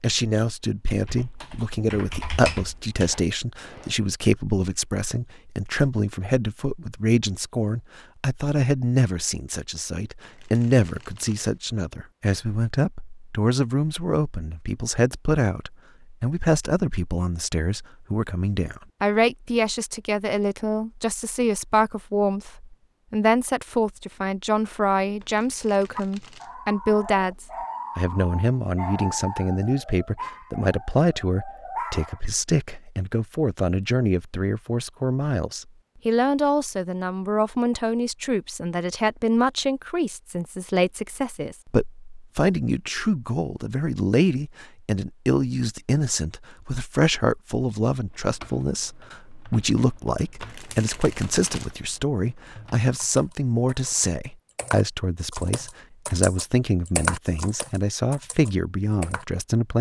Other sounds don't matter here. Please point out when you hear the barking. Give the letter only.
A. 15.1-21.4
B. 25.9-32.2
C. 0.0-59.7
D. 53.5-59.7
B.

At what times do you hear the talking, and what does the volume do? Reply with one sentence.
You can hear the talking from 0.0 to 59.7 s, at a steady volume.